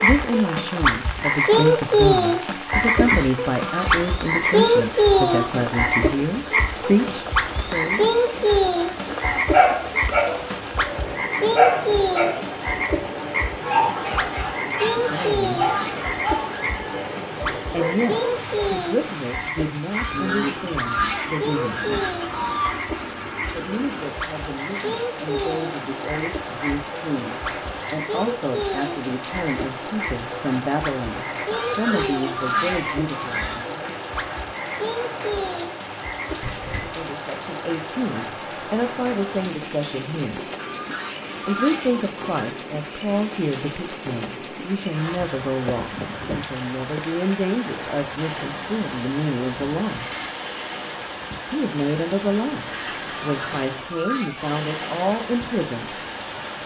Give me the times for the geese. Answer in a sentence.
The geese can be heard from 2.9 to 5.5 s, from 14.8 to 16.8 s, from 19.9 to 22.7 s, from 31.5 to 33.6 s, from 40.5 to 42.6 s and from 53.0 to 54.5 s.